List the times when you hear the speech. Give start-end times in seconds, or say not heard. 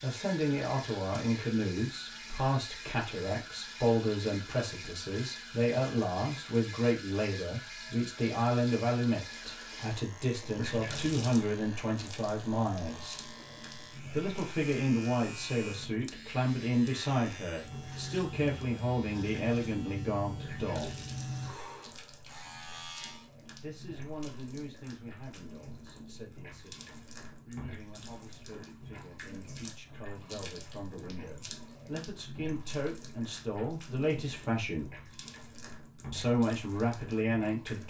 0.0-13.2, 14.1-21.1, 23.6-34.9, 36.1-37.8.